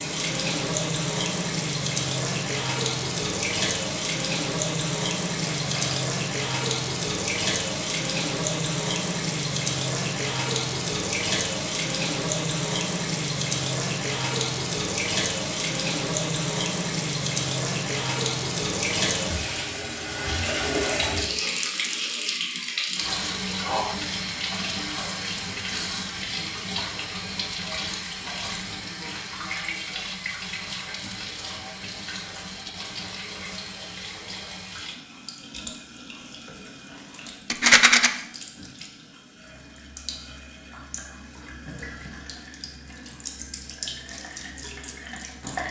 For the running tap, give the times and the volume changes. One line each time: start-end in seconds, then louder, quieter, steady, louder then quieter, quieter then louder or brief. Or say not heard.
0.0-45.6 quieter.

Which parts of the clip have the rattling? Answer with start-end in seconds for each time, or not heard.
5.4-6.0, 37.5-38.1.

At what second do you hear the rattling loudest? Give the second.
38 s.